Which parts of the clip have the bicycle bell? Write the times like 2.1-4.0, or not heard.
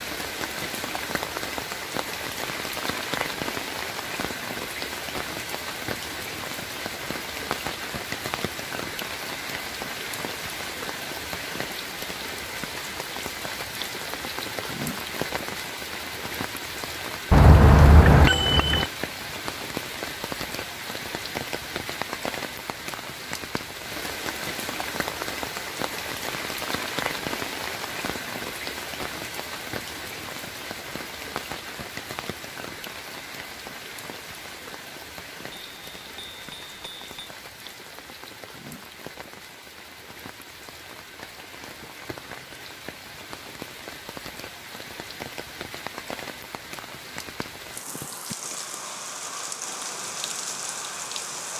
17.3-18.9, 35.5-37.3.